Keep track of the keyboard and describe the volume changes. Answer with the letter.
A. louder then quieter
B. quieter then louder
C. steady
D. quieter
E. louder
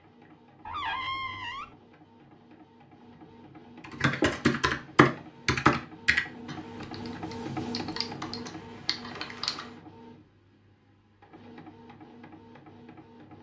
B.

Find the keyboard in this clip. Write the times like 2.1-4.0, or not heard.
3.9-9.7.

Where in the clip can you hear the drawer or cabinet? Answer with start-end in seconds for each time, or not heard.
0.7-1.8.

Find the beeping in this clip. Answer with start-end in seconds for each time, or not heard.
not heard.